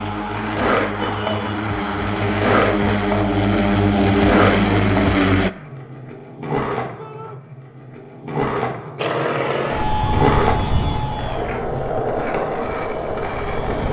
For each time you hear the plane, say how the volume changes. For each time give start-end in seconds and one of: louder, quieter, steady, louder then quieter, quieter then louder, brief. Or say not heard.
0.0-5.5 louder
8.9-13.8 quieter.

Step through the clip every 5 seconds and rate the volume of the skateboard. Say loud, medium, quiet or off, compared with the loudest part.
loud, medium, loud.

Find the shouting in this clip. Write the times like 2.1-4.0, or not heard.
0.9-1.7, 7.0-7.4.